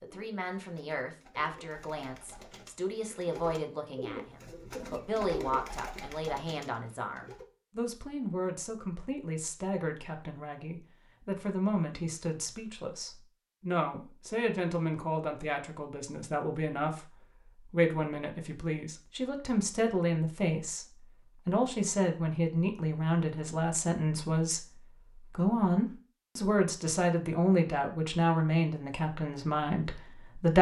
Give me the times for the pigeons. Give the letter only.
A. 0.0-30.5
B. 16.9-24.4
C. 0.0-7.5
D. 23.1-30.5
C.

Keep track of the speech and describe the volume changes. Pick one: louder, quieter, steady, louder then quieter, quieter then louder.
louder.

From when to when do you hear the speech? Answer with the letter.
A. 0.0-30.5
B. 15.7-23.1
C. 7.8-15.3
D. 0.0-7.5
A.